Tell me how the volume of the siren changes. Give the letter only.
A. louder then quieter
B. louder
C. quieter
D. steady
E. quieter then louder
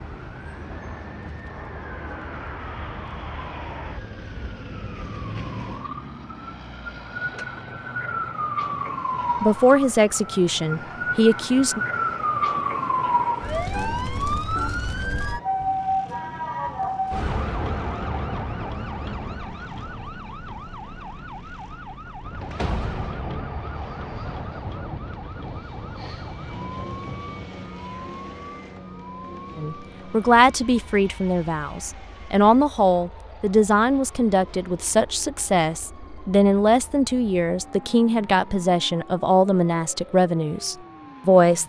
A.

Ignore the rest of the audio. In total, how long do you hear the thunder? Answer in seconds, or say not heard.
4 s.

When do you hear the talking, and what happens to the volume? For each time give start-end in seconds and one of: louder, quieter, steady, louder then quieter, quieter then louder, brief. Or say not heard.
9.4-11.8 brief
29.6-41.6 steady.